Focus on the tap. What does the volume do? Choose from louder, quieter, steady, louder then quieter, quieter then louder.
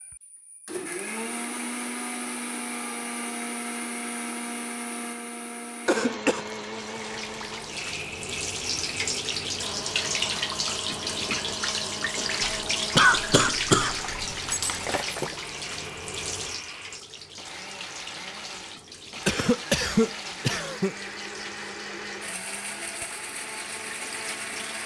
quieter.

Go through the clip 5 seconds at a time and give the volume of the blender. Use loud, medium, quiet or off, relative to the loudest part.
loud, loud, loud, medium, loud.